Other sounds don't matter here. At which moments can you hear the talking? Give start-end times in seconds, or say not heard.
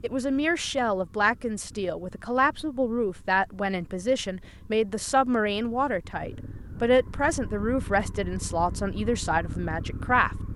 0.0-10.3.